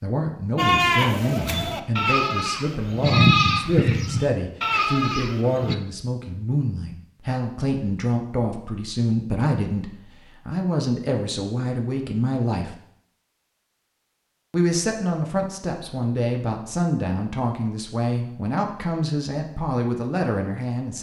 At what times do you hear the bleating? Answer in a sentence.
You can hear the bleating from 0.6 to 5.8 s.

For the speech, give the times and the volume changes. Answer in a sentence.
The speech can be heard from 0.0 to 12.8 s, at a steady volume; and from 14.5 to 20.9 s, at a steady volume.